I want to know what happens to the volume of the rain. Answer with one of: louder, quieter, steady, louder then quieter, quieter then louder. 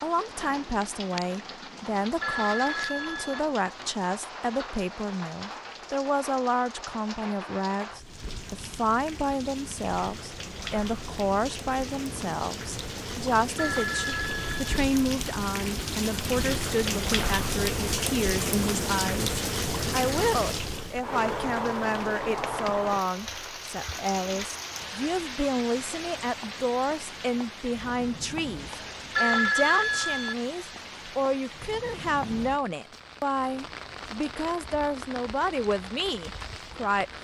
louder then quieter.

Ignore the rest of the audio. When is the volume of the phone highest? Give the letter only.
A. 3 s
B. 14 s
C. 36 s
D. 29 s
D.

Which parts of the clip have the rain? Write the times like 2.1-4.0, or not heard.
0.0-37.1.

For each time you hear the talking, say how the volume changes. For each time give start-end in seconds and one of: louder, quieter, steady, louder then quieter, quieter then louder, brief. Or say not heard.
0.0-37.1 steady.